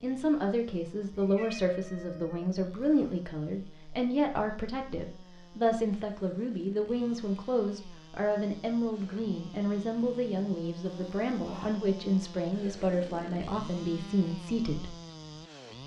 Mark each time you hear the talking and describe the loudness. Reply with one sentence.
You can hear the talking from 0.0 to 14.9 s, at a steady volume.